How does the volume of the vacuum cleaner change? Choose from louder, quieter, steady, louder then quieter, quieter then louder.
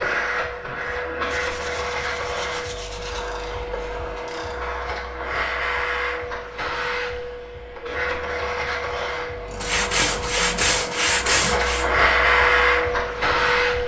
louder.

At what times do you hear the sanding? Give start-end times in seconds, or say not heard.
1.2-3.2, 9.6-11.9.